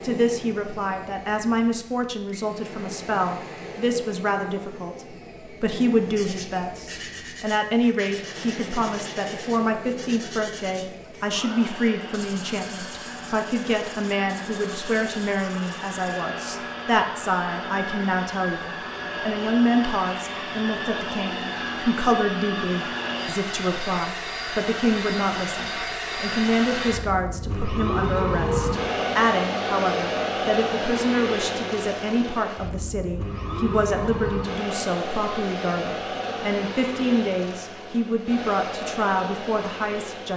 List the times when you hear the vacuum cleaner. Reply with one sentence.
The vacuum cleaner can be heard from 0.0 to 40.3 s.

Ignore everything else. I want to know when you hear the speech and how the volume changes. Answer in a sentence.
You can hear the speech from 0.0 to 40.3 s, at a steady volume.